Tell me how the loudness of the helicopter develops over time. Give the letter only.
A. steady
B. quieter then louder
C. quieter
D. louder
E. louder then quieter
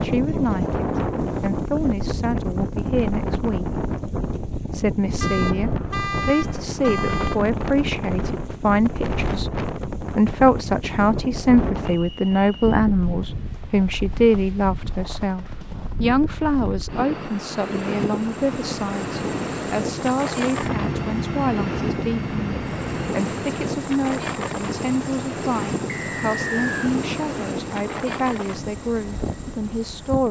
E.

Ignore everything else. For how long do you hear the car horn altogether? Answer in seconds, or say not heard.
2 s.